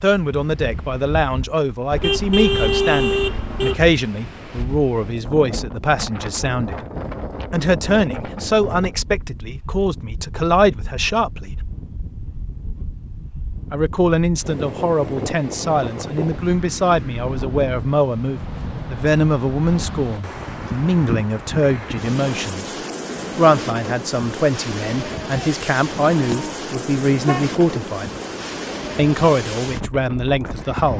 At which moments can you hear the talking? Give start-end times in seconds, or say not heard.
0.0-6.8, 7.5-11.5, 13.7-22.7, 23.4-28.1, 28.9-30.9.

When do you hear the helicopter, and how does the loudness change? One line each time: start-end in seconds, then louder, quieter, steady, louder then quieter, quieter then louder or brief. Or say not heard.
not heard.